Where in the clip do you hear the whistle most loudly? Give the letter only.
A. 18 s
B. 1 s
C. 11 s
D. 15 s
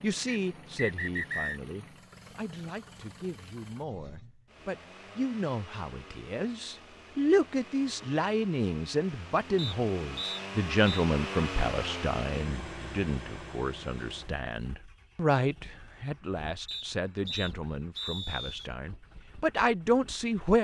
B.